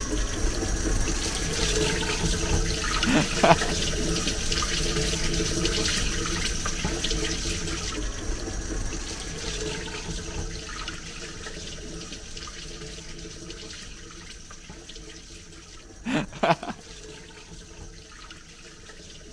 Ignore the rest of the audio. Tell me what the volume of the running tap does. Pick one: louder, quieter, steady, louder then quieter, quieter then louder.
quieter.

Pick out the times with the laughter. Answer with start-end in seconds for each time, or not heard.
3.0-3.8, 16.1-16.8.